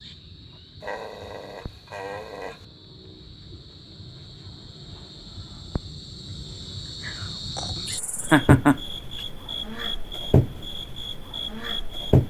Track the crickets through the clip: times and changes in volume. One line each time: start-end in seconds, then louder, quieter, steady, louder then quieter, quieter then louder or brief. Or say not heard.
0.0-12.2 louder.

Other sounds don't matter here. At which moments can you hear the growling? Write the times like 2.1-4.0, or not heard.
0.8-2.6, 7.0-8.5.